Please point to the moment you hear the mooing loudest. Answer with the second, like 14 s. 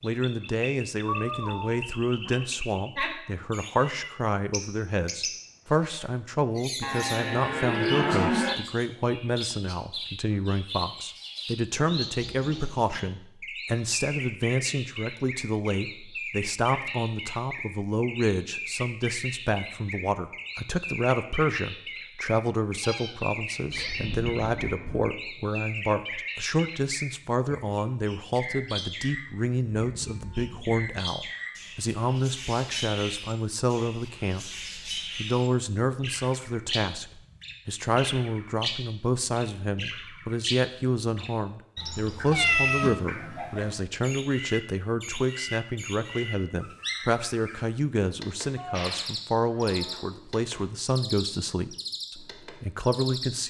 8 s.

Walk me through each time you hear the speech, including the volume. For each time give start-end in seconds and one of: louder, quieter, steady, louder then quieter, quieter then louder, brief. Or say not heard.
0.0-34.5 steady
35.1-53.4 steady.